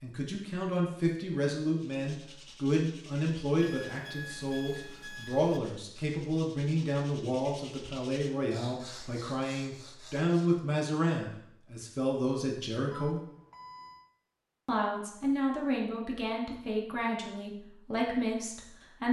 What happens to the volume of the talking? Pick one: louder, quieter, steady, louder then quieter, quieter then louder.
steady.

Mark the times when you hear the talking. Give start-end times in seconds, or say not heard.
0.0-13.2, 14.7-19.0.